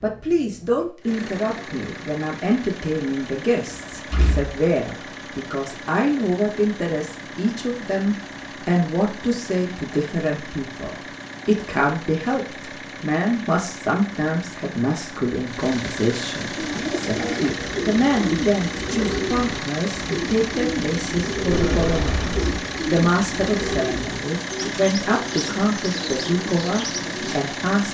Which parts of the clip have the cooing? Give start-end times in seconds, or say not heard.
16.5-27.4.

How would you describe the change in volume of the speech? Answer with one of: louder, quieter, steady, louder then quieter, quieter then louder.
steady.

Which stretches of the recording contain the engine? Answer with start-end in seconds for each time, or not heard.
0.0-27.8.